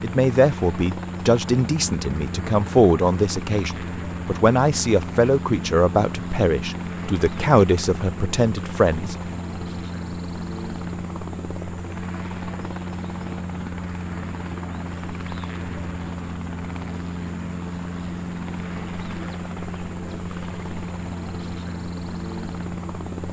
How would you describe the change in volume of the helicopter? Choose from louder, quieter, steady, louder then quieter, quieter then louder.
steady.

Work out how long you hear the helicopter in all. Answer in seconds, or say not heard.
23 s.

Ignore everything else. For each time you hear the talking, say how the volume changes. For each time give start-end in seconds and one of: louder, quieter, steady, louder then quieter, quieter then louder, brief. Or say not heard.
0.0-9.2 steady.